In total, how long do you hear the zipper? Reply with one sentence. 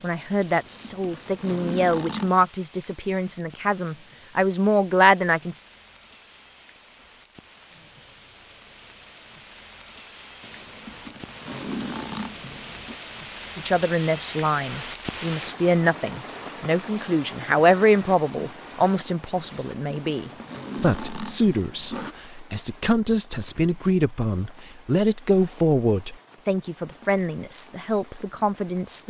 The zipper can be heard for 7 seconds in total.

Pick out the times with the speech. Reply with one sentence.
You can hear the speech from 0.0 to 5.6 s and from 13.6 to 29.0 s.